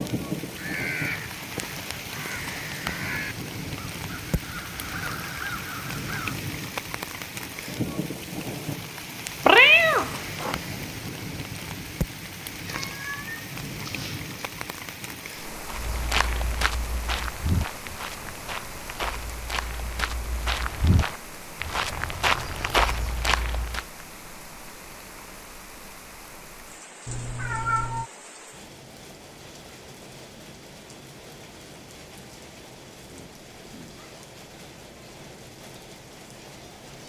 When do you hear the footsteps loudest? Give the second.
23 s.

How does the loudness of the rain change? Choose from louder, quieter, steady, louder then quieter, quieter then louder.
quieter.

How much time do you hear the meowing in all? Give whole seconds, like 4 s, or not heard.
4 s.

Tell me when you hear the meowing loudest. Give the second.
10 s.